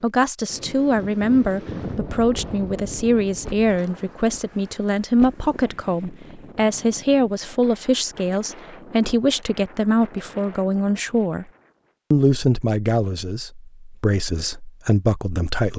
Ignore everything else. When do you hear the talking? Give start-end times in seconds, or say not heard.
0.0-11.4, 12.1-15.7.